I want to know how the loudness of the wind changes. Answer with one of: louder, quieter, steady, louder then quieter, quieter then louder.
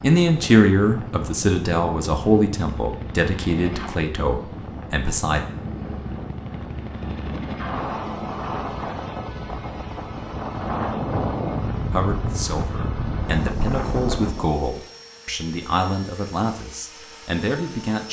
louder.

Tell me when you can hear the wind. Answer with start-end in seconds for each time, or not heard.
0.0-14.5.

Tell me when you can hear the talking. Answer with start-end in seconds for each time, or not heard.
0.0-5.5, 11.9-18.0.